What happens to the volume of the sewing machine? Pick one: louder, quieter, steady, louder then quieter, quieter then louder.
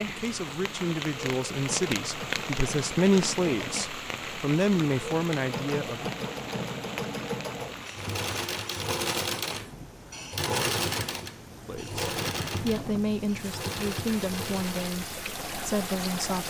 louder then quieter.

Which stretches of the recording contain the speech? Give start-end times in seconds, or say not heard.
0.1-6.1, 11.7-16.4.